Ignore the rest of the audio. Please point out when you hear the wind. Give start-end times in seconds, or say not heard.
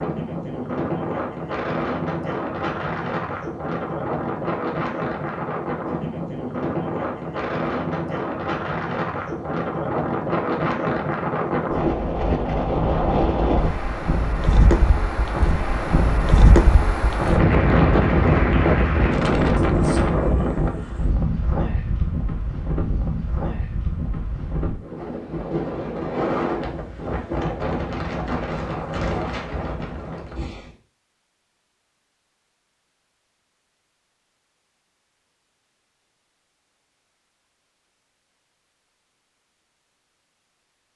0.0-30.7.